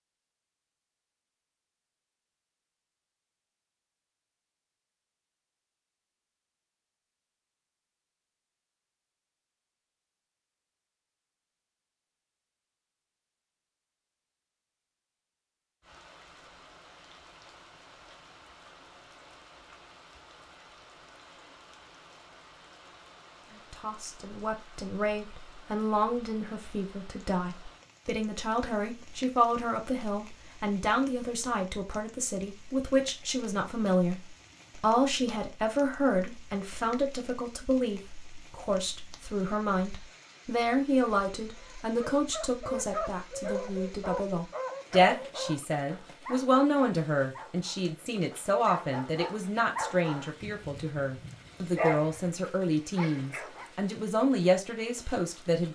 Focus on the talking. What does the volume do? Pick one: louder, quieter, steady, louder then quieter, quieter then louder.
steady.